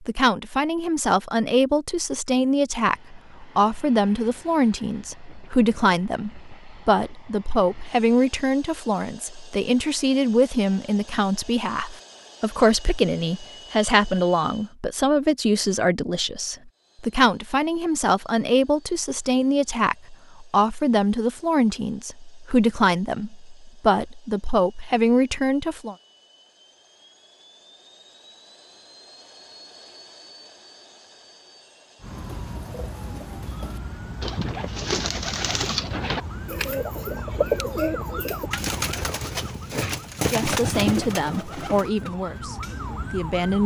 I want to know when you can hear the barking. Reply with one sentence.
You can't hear the barking here.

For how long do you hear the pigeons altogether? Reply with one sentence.
The pigeons can be heard for 10 seconds in total.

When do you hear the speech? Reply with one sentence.
The speech can be heard from 0.0 to 25.9 s and from 40.2 to 43.6 s.